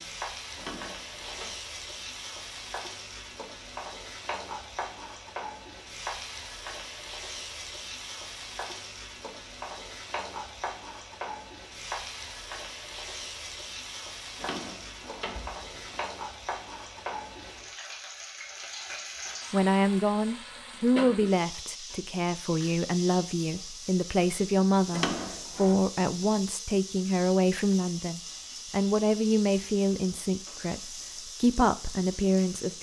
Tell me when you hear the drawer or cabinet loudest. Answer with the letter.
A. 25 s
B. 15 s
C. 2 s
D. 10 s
A.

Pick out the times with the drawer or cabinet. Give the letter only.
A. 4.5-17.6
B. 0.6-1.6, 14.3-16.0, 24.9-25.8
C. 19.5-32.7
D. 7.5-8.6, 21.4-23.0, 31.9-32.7
B.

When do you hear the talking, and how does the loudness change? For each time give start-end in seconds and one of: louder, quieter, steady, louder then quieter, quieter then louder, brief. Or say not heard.
19.5-32.7 steady.